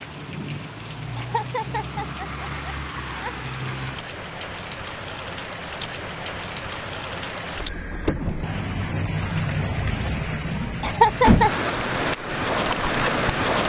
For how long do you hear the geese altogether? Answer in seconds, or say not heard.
not heard.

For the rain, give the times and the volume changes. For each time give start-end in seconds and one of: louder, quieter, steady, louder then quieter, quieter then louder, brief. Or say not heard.
0.0-13.6 louder.